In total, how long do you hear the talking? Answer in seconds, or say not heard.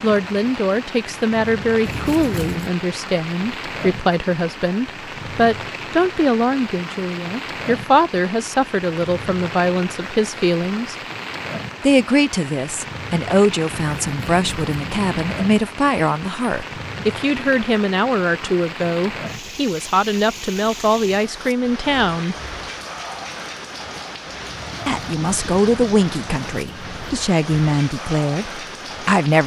26 s.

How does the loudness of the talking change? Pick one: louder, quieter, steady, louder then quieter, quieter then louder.
steady.